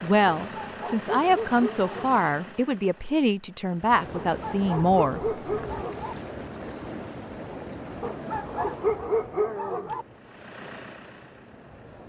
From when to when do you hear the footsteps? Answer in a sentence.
You can't hear the footsteps here.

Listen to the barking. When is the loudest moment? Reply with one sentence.
The loudest moment of the barking is at 9 seconds.